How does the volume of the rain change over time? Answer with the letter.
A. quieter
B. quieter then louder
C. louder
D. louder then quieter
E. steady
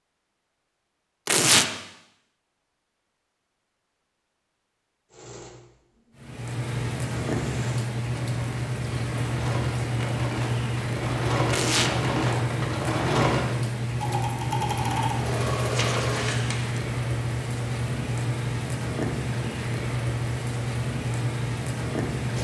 E.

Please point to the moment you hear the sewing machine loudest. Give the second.
13 s.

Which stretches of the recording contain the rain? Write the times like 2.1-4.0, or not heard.
6.2-22.3.